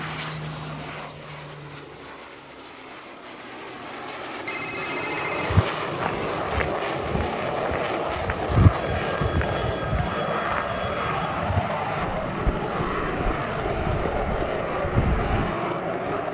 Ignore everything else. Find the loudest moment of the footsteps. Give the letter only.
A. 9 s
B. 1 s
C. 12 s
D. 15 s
A.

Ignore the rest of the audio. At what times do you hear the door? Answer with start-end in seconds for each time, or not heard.
not heard.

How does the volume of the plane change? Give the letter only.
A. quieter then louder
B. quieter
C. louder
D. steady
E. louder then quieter
C.